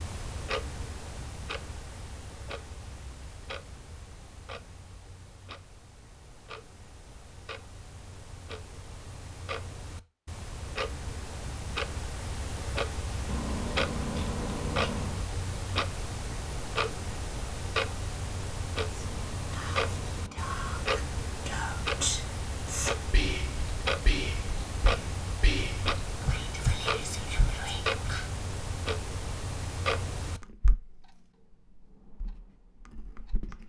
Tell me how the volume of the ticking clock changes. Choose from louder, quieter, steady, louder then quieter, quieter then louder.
louder.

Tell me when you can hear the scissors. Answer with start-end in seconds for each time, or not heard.
13.2-15.2, 19.1-20.6.